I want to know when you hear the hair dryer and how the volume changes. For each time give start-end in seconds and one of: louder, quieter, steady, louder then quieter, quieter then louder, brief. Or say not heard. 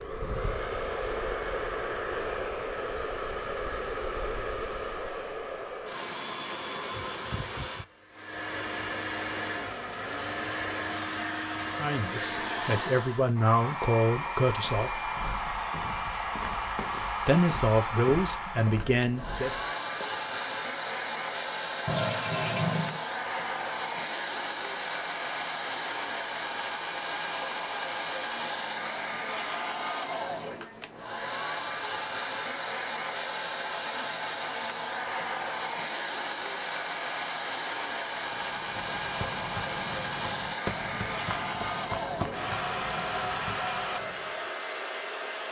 0.0-45.4 steady.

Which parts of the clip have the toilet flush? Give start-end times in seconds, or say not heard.
21.9-23.0.